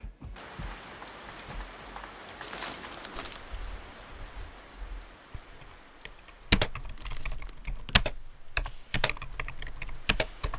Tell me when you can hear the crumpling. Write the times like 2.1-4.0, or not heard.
2.4-3.4, 6.8-8.0.